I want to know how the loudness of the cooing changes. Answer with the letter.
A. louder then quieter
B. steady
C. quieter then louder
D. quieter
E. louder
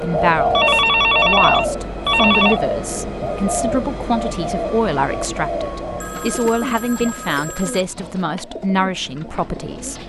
D.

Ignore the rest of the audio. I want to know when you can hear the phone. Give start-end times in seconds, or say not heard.
0.5-2.6, 6.0-7.8.